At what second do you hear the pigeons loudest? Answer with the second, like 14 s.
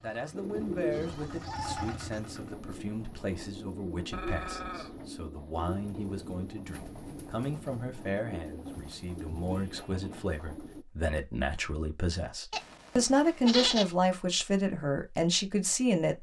1 s.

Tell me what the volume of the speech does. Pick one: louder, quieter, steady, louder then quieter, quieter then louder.
louder.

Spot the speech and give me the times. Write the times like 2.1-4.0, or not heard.
0.0-16.1.